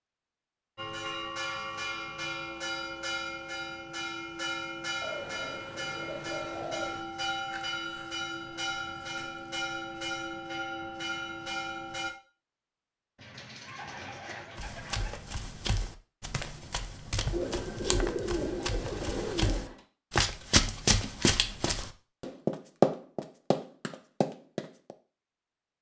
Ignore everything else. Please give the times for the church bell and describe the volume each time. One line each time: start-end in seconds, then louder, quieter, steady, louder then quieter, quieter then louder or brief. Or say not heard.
0.8-12.1 steady.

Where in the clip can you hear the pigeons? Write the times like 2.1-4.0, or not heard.
5.0-7.0, 13.2-15.2, 17.3-19.8.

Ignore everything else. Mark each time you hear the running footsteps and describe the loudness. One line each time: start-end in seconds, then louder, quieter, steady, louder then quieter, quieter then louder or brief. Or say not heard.
14.6-24.9 louder.